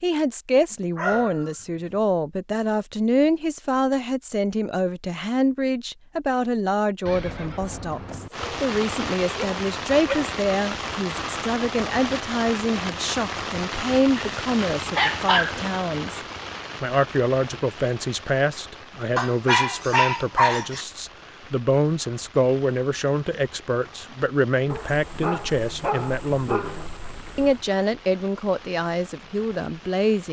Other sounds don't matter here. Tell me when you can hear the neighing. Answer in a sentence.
You can hear the neighing from 7.0 to 8.3 s.